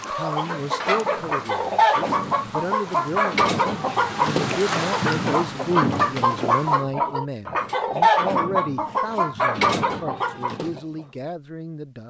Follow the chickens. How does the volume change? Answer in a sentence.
The volume of the chickens stays about the same.